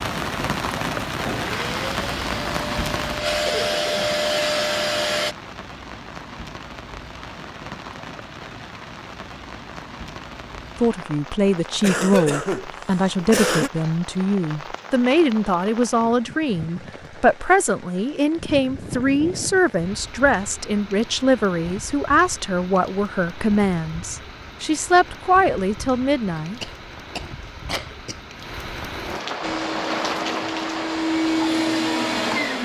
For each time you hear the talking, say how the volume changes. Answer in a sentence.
You can hear the talking from 10.8 to 26.6 s, at a steady volume.